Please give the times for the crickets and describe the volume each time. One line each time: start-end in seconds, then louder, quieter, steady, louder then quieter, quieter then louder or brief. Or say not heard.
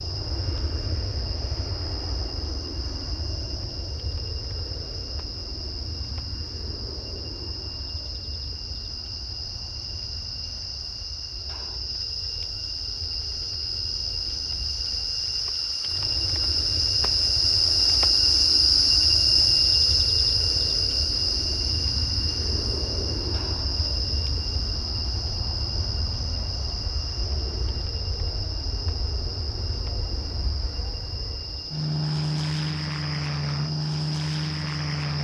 0.0-35.1 louder then quieter.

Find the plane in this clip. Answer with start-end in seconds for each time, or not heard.
0.0-35.1.